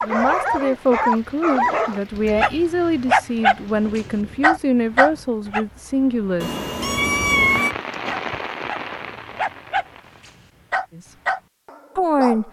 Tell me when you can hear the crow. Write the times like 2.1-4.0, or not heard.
not heard.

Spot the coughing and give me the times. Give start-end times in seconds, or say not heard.
not heard.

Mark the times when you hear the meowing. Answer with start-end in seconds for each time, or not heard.
2.1-2.8, 6.4-7.8.